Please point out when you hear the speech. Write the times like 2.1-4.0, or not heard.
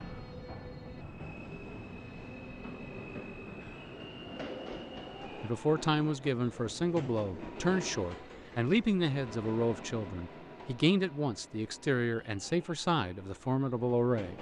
5.4-14.3.